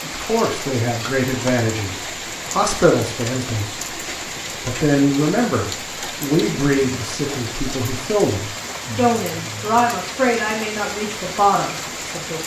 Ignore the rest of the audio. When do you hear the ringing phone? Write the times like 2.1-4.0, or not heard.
not heard.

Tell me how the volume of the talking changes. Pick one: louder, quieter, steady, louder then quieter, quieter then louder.
steady.